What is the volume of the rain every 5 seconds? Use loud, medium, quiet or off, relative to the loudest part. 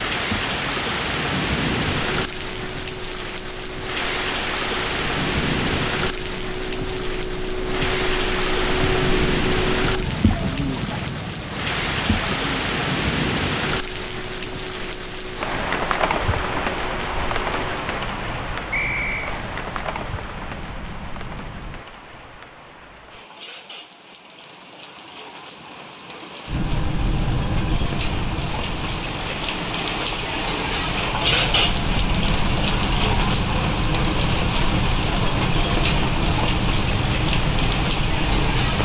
loud, loud, loud, loud, quiet, medium, loud, loud.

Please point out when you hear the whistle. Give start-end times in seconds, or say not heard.
18.7-19.3.